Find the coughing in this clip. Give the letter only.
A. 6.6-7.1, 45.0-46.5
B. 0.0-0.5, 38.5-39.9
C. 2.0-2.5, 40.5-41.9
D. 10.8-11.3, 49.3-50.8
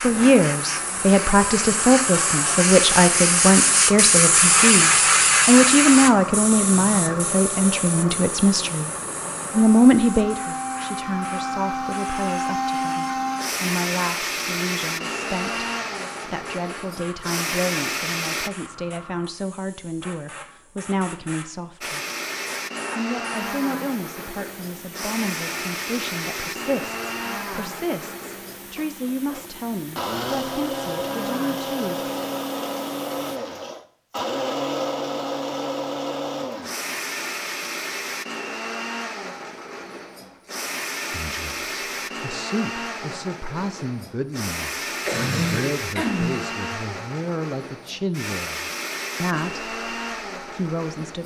A.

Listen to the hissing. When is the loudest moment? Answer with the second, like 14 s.
5 s.